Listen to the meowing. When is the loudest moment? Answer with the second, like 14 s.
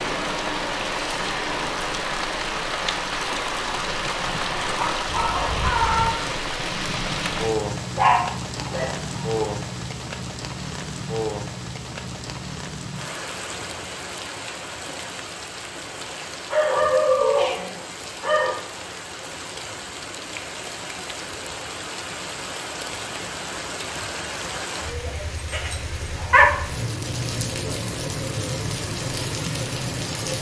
6 s.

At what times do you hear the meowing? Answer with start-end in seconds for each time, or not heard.
5.3-6.2, 16.8-17.7.